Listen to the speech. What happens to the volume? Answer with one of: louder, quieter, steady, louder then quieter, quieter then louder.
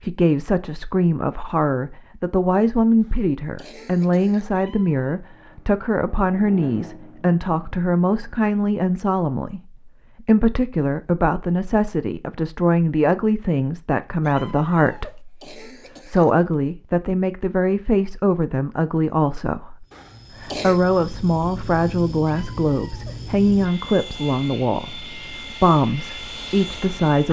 steady.